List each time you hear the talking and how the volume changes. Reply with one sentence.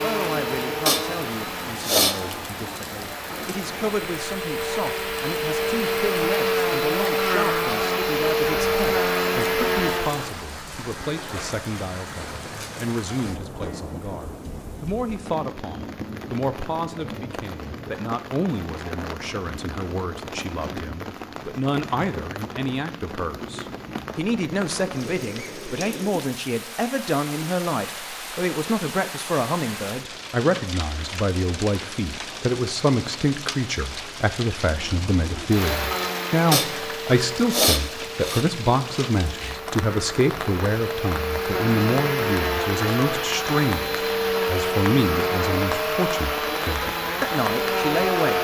The talking can be heard from 0.0 to 48.4 s, getting louder.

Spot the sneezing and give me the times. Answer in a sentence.
The sneezing can be heard from 0.8 to 2.1 s and from 36.5 to 38.5 s.